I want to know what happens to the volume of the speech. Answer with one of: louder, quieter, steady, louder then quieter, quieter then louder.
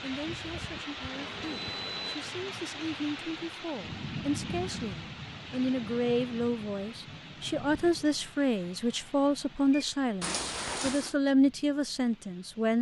louder.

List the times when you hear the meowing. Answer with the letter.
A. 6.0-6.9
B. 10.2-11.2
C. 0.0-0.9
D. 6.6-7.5
B.